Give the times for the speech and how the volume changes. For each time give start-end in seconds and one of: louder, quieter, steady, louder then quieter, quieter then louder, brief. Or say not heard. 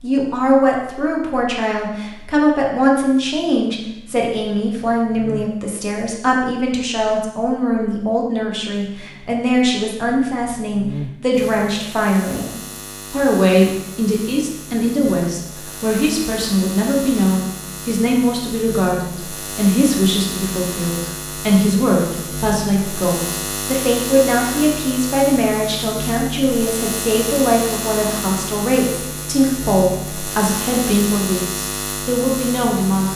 0.0-12.5 steady
13.1-33.1 steady.